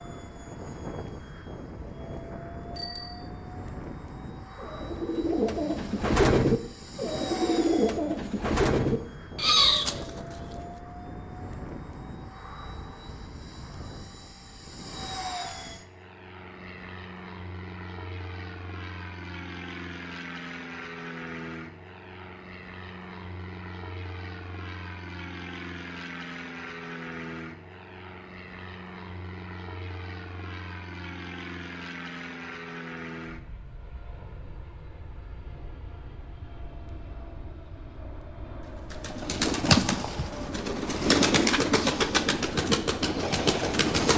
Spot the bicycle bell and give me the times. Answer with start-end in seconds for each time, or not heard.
2.8-3.2.